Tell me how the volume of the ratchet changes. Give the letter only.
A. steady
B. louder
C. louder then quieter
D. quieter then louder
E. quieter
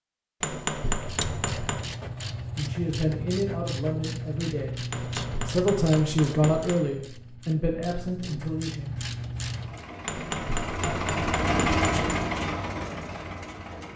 D.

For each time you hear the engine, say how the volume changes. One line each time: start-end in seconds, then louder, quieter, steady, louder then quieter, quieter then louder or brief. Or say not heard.
9.3-13.9 louder then quieter.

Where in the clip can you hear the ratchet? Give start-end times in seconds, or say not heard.
0.9-9.8.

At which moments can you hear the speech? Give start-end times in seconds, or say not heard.
2.5-8.9.